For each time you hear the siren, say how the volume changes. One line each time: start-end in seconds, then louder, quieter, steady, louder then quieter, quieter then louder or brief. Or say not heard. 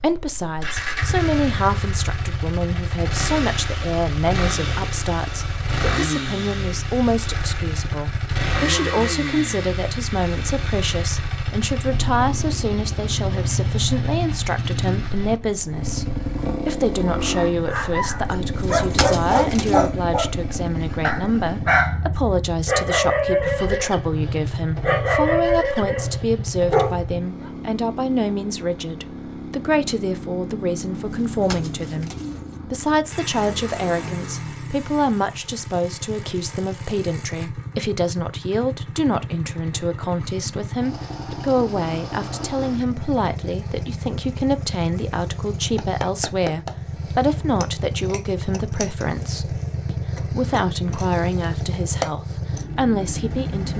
not heard.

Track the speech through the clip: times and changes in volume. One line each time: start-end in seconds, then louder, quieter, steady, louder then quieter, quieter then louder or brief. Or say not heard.
0.0-53.7 steady.